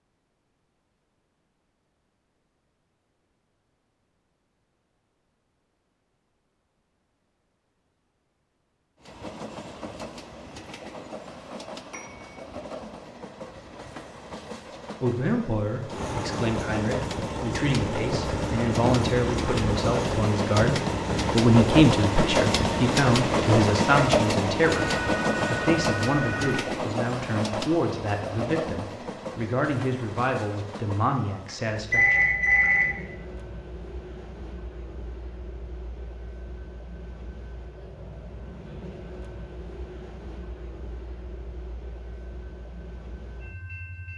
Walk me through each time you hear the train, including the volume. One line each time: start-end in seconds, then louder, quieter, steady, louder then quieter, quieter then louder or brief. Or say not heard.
9.0-44.1 louder then quieter.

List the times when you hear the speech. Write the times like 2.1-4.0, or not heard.
15.0-32.2.